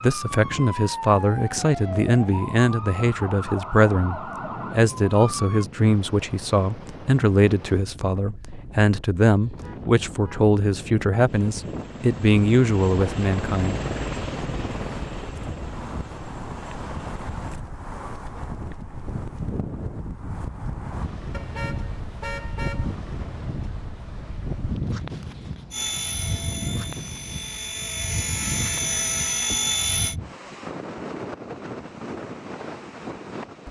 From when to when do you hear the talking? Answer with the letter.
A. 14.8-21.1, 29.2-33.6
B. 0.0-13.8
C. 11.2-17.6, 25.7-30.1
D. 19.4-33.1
B.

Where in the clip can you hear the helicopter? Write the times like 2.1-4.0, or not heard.
11.2-17.6, 25.7-30.1.